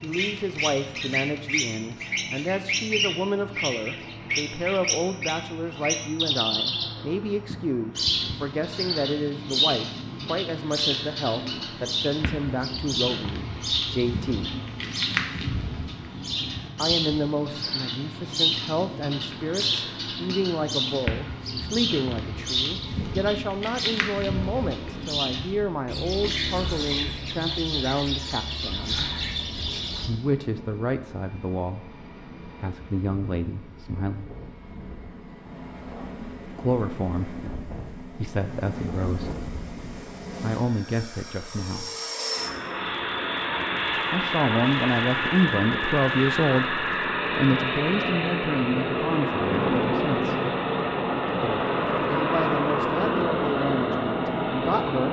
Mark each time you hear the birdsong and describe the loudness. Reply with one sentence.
The birdsong can be heard from 0.0 to 30.1 s, at a steady volume.